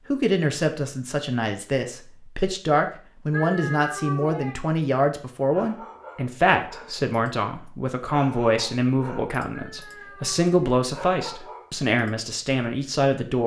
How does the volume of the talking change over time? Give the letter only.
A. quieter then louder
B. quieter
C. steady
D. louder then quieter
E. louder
C.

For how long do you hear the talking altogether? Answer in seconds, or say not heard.
13 s.